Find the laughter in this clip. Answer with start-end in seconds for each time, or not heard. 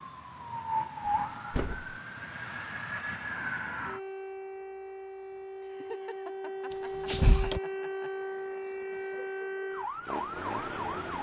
5.6-8.1.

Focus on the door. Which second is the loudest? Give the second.
7 s.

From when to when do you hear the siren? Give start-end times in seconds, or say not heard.
0.0-11.1.